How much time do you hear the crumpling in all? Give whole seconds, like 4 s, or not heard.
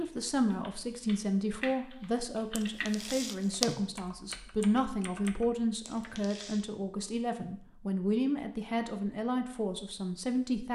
2 s.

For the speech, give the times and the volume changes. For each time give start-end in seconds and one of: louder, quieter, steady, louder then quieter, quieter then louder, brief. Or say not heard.
0.0-10.6 steady.